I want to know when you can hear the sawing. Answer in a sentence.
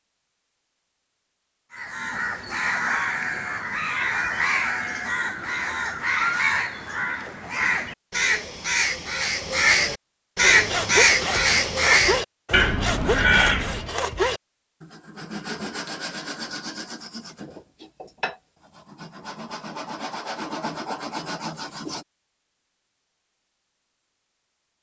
The sawing can be heard from 10.4 to 22.1 s.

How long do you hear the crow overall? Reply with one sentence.
You can hear the crow for 12 seconds altogether.